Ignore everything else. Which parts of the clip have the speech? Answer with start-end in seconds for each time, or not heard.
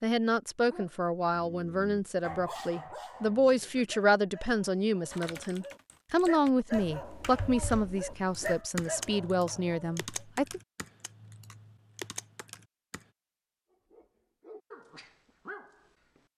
0.0-10.6.